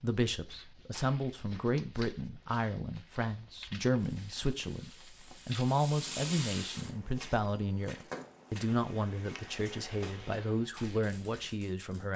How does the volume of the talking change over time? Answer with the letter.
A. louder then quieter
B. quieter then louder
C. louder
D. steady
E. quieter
D.